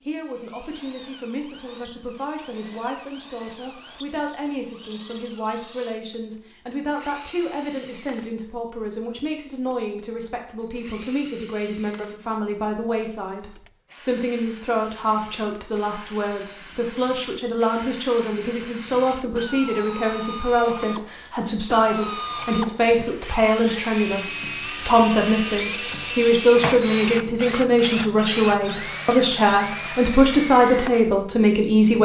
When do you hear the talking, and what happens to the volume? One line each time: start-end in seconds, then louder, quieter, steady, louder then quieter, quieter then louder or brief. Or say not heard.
0.0-32.0 louder.